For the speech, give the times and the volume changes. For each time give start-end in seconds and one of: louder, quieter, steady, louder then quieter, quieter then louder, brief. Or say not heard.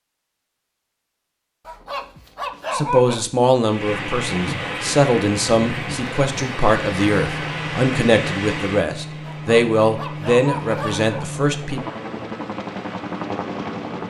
2.7-11.8 steady.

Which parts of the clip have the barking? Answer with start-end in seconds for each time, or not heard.
1.6-3.2, 9.2-11.2.